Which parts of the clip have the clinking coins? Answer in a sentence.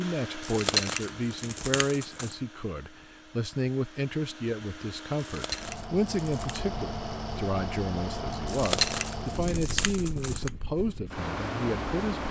You can hear the clinking coins from 0.4 to 2.4 s, from 5.2 to 6.7 s and from 8.4 to 10.5 s.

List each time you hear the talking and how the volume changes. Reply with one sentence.
You can hear the talking from 0.0 to 12.2 s, at a steady volume.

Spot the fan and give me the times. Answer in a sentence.
The fan can be heard from 0.0 to 12.2 s.